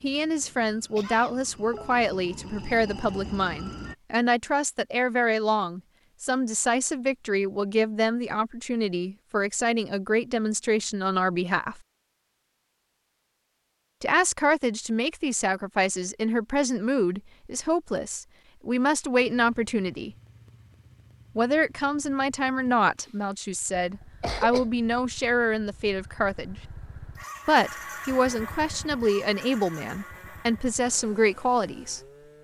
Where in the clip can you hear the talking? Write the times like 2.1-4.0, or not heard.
0.0-11.8, 14.0-20.1, 21.4-26.6, 27.4-32.0.